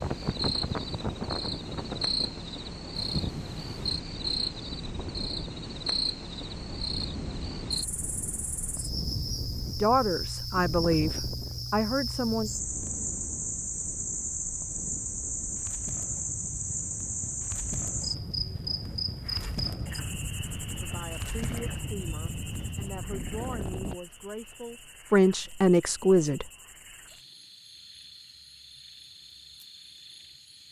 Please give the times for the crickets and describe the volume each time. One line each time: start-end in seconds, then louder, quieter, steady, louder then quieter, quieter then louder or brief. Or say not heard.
0.0-30.6 quieter.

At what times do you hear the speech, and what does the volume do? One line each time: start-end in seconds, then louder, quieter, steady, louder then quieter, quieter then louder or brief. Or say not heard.
9.8-12.5 brief
20.8-26.4 louder.